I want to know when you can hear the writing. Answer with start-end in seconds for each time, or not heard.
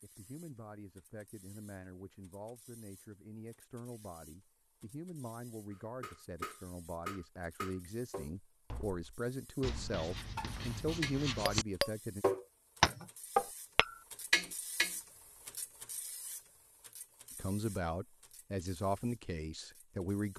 9.6-11.7.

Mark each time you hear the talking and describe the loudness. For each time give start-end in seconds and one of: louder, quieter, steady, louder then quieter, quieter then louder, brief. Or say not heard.
0.0-12.2 louder
17.4-20.3 brief.